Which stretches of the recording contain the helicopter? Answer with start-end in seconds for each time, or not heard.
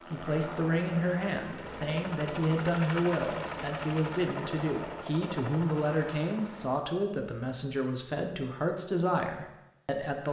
0.0-6.8.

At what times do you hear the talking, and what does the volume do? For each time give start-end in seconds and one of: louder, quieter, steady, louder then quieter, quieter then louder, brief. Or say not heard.
0.1-10.2 steady.